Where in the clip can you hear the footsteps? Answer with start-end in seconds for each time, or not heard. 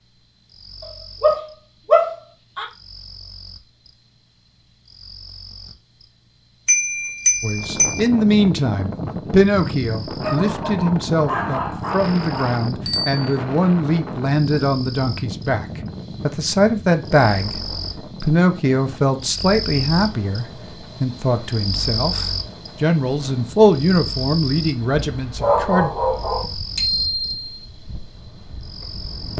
not heard.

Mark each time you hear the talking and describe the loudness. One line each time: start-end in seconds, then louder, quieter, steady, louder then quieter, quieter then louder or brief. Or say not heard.
7.4-25.9 steady.